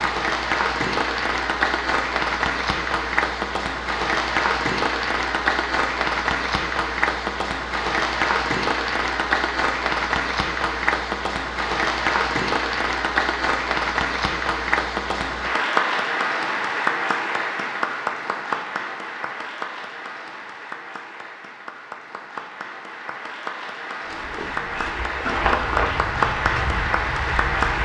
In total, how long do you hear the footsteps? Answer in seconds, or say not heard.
4 s.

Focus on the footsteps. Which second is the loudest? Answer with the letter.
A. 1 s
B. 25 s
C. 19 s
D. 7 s
B.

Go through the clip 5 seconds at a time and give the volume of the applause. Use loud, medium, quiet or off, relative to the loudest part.
loud, loud, loud, loud, medium, loud.